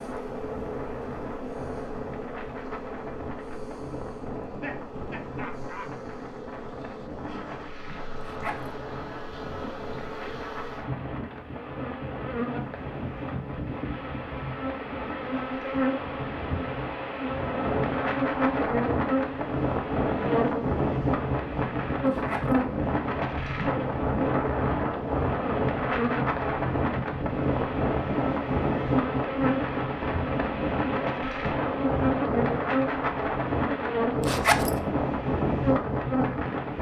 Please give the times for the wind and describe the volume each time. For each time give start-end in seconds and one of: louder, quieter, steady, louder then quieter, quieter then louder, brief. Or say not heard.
0.0-36.7 louder.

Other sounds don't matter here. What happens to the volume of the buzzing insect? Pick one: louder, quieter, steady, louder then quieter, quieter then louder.
louder.